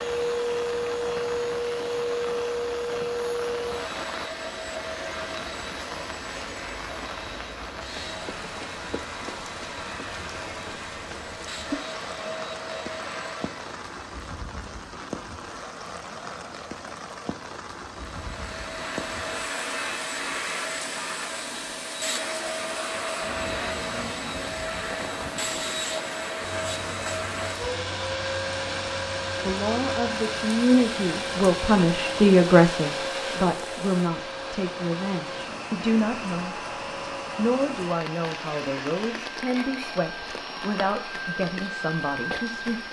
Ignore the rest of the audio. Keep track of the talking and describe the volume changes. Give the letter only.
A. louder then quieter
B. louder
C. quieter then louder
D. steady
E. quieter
E.